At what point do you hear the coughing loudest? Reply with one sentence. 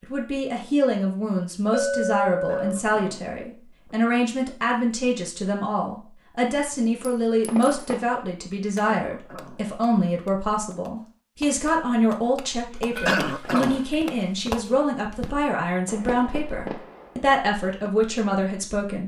The volume of the coughing peaks at 13 seconds.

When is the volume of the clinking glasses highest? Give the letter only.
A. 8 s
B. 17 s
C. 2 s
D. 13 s
C.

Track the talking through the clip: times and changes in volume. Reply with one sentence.
You can hear the talking from 0.0 to 19.0 s, at a steady volume.